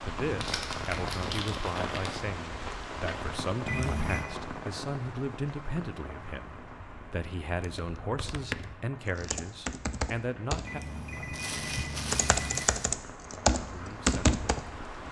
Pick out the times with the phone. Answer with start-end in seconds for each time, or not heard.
3.6-4.3, 10.7-12.7.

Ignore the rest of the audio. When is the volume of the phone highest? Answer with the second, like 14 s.
4 s.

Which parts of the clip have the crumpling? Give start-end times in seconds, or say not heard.
0.3-2.2, 11.3-12.9.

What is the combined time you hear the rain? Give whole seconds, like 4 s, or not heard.
15 s.